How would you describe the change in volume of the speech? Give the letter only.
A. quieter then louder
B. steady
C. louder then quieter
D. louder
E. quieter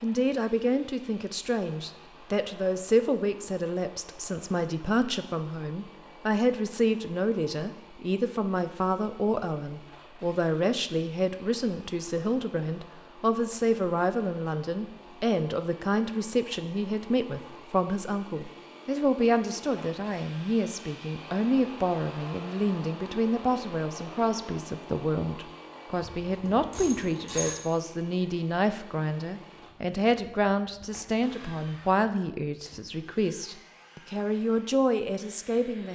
B.